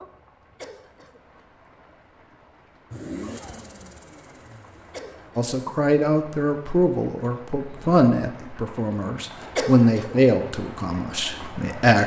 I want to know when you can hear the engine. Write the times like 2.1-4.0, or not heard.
2.9-5.3.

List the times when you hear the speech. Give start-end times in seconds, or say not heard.
5.3-12.0.